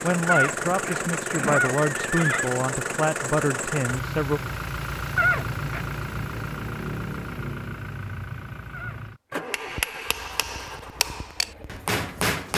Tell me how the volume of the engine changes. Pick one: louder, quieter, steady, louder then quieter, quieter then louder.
quieter.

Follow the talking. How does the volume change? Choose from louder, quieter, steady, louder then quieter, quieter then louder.
steady.